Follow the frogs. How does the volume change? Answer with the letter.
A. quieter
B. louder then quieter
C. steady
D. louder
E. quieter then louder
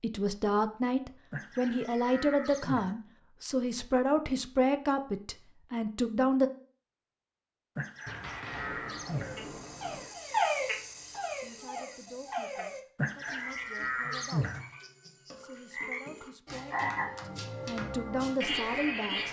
E.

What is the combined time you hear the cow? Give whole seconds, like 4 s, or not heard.
5 s.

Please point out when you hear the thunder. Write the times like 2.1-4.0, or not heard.
8.1-10.1.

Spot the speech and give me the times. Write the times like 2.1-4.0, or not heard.
0.0-6.5, 11.4-14.5, 15.3-19.2.